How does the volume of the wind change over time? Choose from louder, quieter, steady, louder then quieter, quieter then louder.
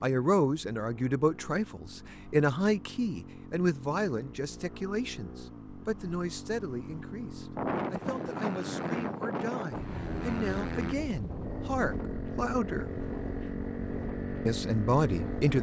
quieter.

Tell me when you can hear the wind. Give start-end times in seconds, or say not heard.
7.5-15.4.